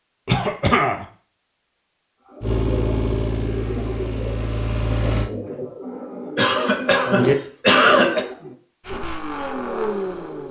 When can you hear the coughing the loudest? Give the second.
8 s.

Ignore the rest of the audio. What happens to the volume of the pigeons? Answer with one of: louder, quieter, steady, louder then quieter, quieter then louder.
louder.